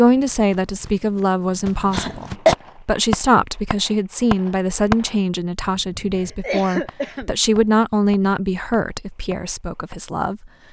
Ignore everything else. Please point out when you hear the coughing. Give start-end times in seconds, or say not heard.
1.9-2.5, 6.2-7.3.